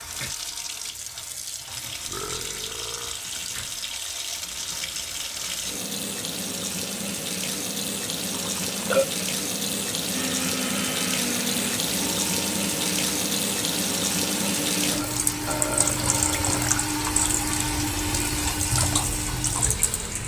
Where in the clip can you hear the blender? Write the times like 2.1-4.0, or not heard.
10.1-20.2.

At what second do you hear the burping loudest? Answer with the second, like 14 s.
9 s.